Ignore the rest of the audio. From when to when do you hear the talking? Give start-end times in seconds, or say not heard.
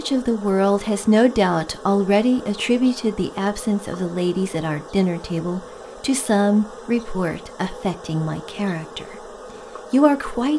0.0-9.2, 9.9-10.5.